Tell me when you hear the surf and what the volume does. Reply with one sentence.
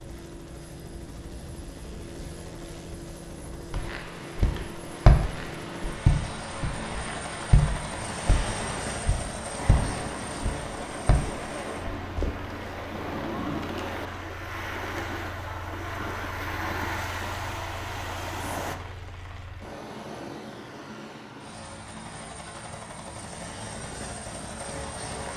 You can hear the surf from 0.0 to 18.8 s, getting louder.